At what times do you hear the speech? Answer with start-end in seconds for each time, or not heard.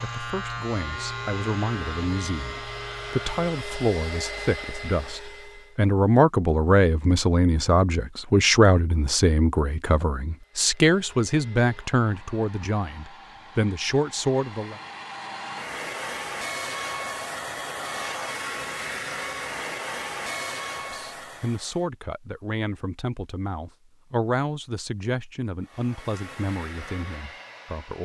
0.0-14.8, 20.8-28.0.